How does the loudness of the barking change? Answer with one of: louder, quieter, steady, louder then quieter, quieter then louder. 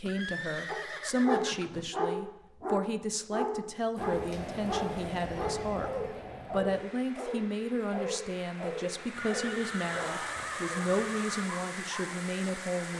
quieter.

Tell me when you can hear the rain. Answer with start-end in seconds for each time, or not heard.
4.0-12.9.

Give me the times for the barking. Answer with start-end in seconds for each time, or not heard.
0.7-12.1.